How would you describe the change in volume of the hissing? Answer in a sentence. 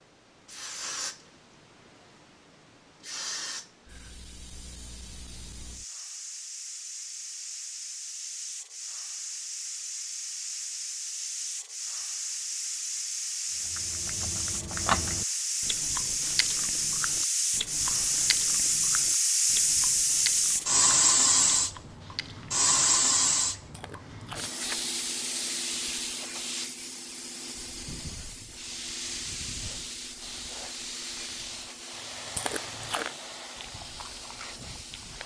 The loudness of the hissing goes up, then down.